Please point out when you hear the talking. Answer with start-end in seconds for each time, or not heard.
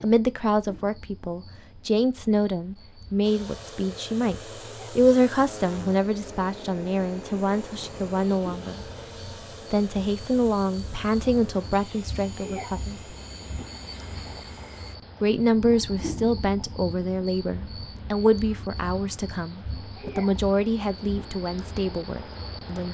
0.0-8.8, 9.7-13.2, 15.2-22.8.